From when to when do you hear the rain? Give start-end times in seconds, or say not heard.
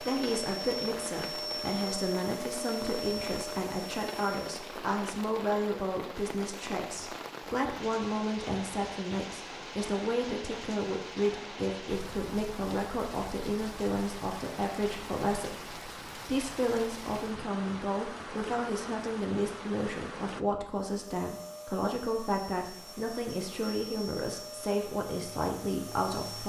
0.0-20.4.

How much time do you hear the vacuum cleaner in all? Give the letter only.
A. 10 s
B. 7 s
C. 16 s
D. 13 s
A.